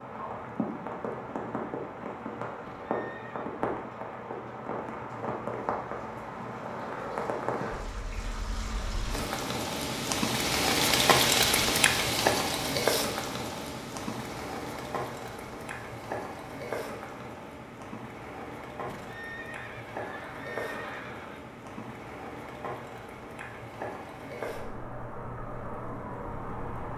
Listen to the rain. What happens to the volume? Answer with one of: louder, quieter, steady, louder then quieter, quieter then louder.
louder then quieter.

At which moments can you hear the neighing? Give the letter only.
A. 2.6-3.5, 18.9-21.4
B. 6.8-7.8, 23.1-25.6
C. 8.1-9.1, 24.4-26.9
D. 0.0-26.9
A.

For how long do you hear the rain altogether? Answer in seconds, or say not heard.
27 s.